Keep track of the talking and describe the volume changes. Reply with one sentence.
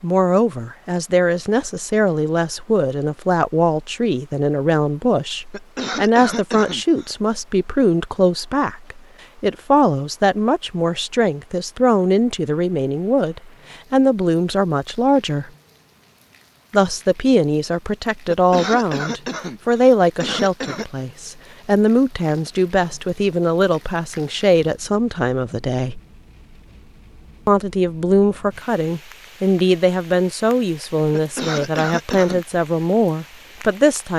The volume of the talking stays about the same.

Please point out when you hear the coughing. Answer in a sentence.
You can hear the coughing from 5.5 to 7.2 s, from 18.2 to 20.9 s and from 31.1 to 32.5 s.